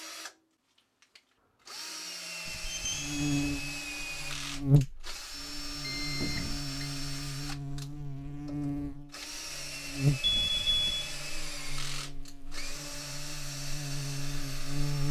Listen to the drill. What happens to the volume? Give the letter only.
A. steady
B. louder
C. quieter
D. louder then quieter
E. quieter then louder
A.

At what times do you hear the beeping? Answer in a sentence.
You can hear the beeping from 2.5 to 3.5 s, from 5.8 to 6.9 s and from 10.2 to 11.2 s.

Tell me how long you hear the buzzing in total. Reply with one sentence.
You can hear the buzzing for 12 seconds altogether.